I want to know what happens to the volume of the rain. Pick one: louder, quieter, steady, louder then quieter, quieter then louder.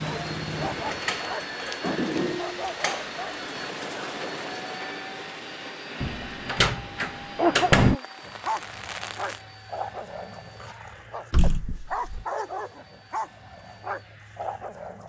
quieter.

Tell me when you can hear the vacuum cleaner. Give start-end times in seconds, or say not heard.
0.0-15.0.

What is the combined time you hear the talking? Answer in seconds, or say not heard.
not heard.